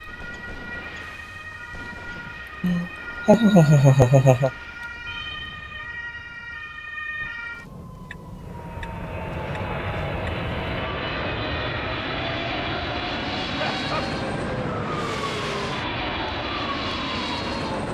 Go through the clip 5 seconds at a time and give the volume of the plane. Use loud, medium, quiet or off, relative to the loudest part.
off, medium, loud, loud.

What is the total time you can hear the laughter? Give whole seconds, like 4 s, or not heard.
3 s.